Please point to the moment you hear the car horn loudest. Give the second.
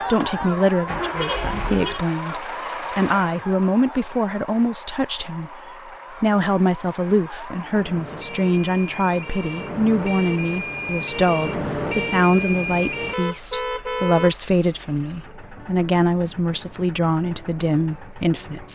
14 s.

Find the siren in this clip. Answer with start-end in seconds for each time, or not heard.
0.0-13.2.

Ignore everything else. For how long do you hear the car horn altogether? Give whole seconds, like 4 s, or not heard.
3 s.